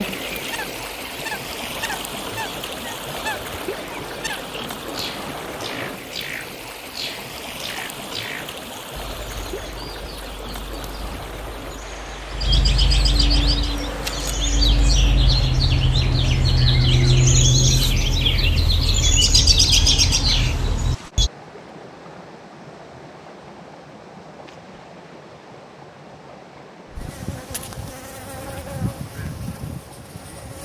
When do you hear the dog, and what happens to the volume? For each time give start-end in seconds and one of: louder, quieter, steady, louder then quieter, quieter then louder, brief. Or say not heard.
not heard.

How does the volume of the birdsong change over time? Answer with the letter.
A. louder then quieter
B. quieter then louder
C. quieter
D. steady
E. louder
E.